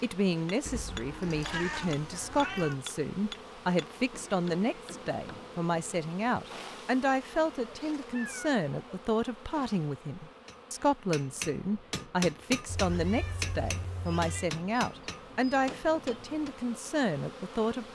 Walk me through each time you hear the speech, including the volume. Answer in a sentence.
You can hear the speech from 0.0 to 17.9 s, at a steady volume.